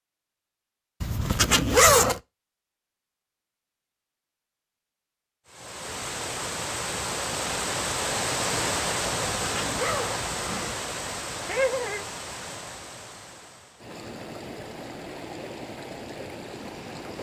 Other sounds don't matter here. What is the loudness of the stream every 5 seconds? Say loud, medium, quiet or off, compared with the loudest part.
off, loud, medium, medium.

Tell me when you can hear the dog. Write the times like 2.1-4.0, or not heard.
not heard.